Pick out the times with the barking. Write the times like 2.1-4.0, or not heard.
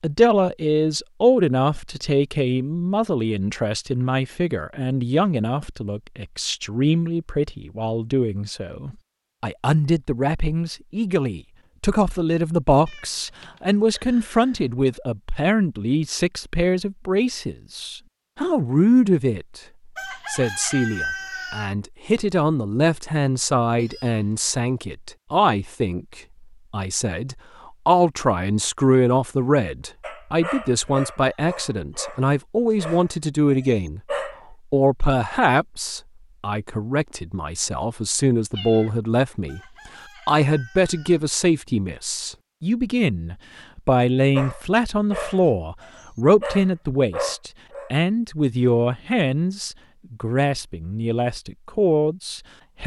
30.0-34.4, 44.4-48.0.